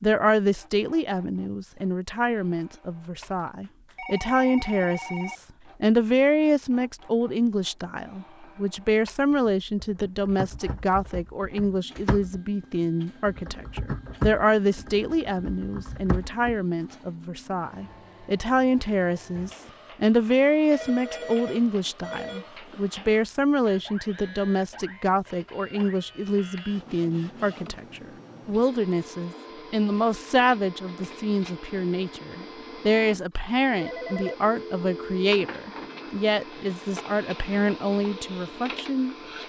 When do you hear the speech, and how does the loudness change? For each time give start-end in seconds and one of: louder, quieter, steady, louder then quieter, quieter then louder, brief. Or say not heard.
0.0-39.1 steady.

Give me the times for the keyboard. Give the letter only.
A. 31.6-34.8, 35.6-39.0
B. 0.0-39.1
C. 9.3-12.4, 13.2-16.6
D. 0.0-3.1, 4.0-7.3
C.